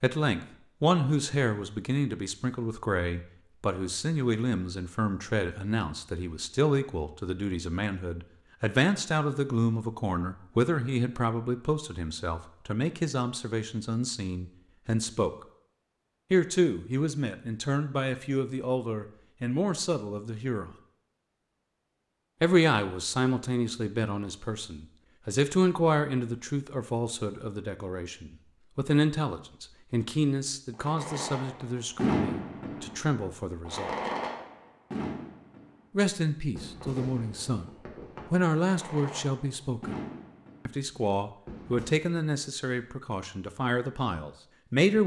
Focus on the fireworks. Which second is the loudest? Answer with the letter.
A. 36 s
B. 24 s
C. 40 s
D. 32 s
D.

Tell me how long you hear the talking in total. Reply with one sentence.
You can hear the talking for 39 seconds altogether.